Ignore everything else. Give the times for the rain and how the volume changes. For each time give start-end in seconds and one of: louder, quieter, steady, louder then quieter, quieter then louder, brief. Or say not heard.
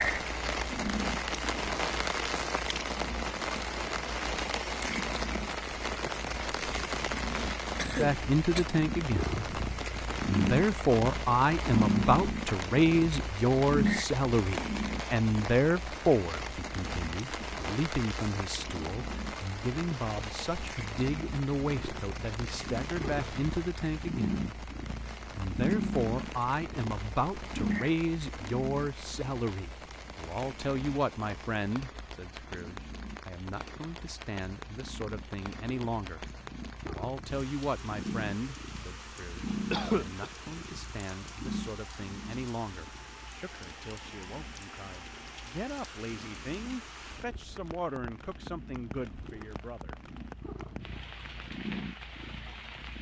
0.0-52.9 quieter.